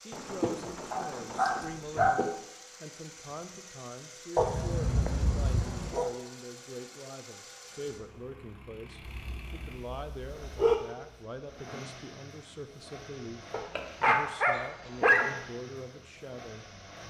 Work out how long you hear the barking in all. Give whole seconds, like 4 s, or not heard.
7 s.